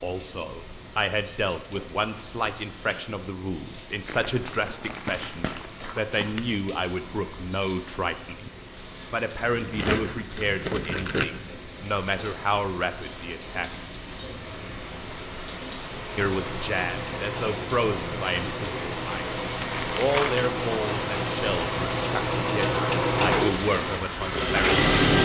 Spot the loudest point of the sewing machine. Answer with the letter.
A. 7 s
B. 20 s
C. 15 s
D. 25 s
D.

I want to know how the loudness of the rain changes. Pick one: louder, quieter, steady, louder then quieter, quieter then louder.
louder.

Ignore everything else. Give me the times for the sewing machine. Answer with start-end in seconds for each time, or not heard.
16.1-25.2.